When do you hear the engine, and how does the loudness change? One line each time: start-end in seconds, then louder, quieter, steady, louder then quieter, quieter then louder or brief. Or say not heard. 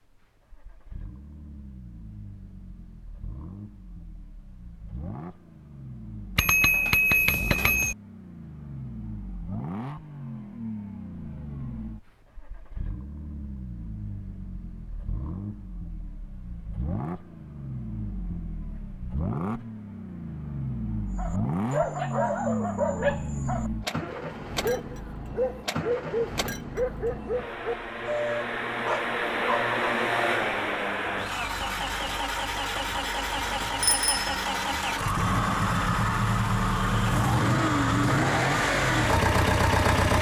0.0-40.1 louder.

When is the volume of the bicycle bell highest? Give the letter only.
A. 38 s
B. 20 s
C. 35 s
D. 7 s
D.